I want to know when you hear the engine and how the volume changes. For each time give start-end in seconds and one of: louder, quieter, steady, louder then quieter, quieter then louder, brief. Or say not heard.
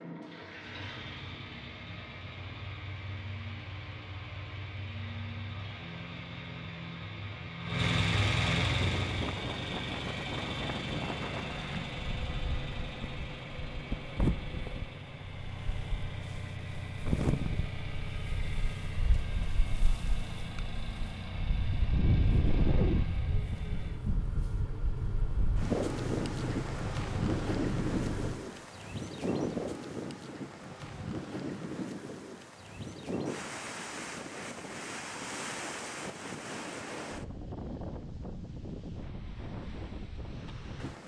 0.0-28.4 louder then quieter.